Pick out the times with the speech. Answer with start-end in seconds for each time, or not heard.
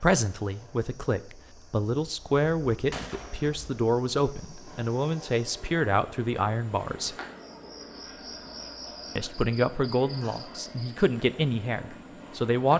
0.0-7.2, 9.2-12.7.